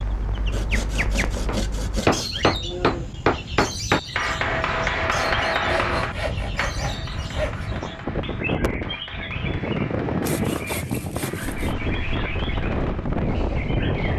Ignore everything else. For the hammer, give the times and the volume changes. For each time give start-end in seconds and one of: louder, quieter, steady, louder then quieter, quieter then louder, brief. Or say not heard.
1.4-13.2 quieter.